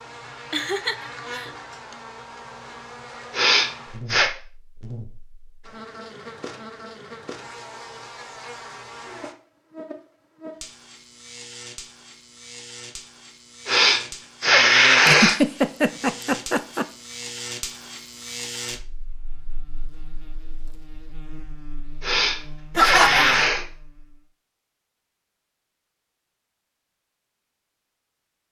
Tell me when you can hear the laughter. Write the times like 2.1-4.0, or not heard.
0.5-1.5, 15.1-16.9, 22.8-23.4.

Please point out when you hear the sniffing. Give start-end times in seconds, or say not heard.
3.3-4.3, 13.7-15.4, 22.0-23.6.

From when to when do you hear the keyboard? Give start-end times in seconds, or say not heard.
not heard.